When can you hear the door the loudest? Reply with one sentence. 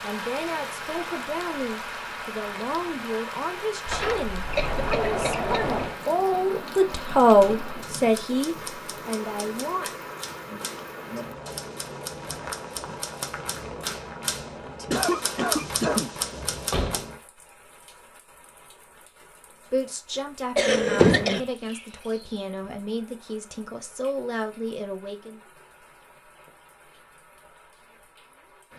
The volume of the door peaks at 21 seconds.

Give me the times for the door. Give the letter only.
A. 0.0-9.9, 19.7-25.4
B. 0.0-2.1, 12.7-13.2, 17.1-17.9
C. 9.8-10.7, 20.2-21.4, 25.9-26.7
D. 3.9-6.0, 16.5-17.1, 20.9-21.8
D.